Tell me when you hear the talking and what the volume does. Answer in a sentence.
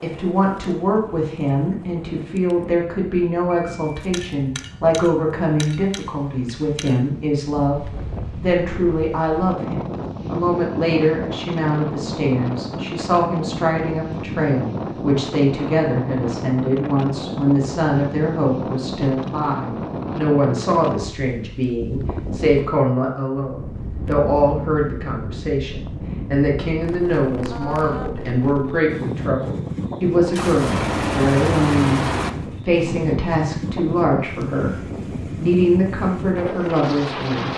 The talking can be heard from 0.0 to 37.5 s, at a steady volume.